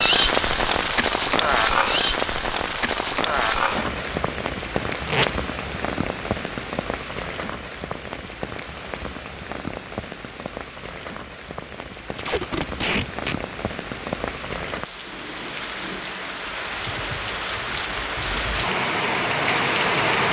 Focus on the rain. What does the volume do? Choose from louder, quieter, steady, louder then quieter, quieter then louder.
quieter then louder.